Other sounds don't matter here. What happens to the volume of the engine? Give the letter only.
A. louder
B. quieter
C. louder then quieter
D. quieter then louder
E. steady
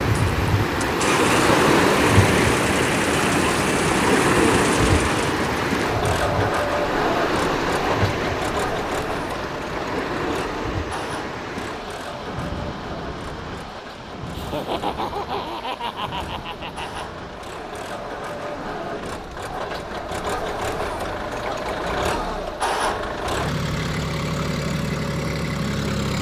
D.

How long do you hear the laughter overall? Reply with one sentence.
The laughter can be heard for 3 seconds in total.